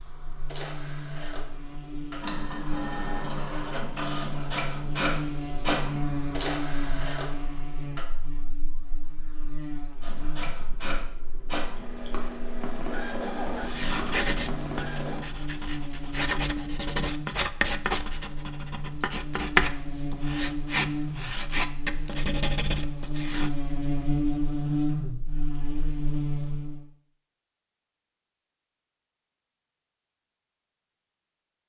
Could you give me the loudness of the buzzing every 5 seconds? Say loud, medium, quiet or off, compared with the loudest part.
medium, medium, medium, medium, loud, loud, off.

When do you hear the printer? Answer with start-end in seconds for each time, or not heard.
0.0-8.1, 10.0-15.2.